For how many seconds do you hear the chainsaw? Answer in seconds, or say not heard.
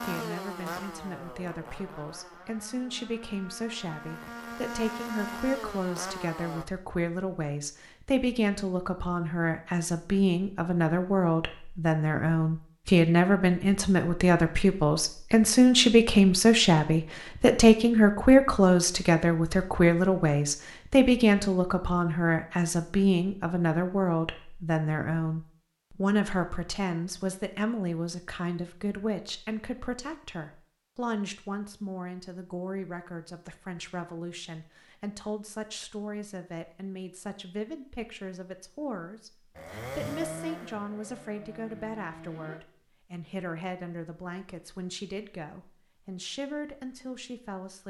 10 s.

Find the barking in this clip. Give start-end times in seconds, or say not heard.
not heard.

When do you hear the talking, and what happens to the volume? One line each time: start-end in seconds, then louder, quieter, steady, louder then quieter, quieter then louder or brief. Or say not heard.
0.0-47.8 louder then quieter.